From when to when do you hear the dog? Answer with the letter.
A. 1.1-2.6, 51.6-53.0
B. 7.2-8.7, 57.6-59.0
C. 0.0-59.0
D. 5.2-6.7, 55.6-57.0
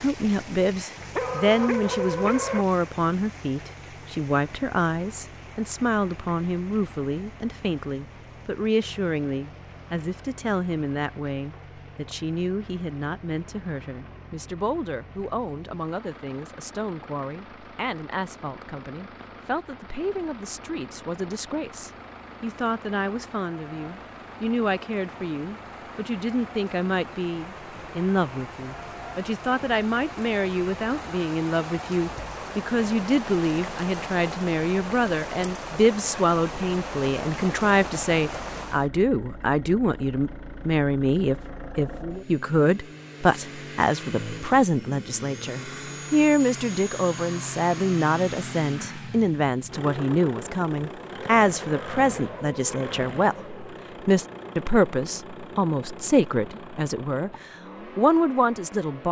A.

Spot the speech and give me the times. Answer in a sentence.
The speech can be heard from 0.0 to 59.0 s.